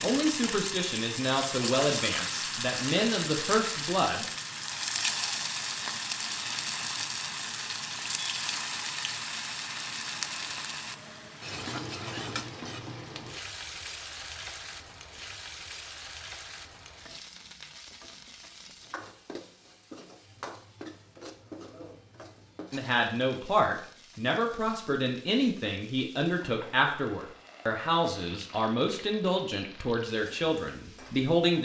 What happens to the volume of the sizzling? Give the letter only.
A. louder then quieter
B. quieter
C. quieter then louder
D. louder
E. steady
B.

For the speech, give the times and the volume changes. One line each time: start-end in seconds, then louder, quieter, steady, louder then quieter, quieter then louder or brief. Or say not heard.
0.0-4.3 steady
22.7-31.6 steady.